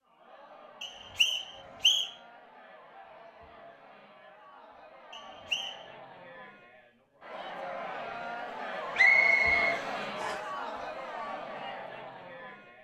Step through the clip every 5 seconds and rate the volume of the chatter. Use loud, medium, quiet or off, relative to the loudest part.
quiet, loud, loud.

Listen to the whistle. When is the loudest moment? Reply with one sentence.
The loudest moment of the whistle is at 9 seconds.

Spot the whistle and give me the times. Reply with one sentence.
The whistle can be heard from 0.8 to 2.1 s, from 5.1 to 5.8 s and from 8.9 to 10.4 s.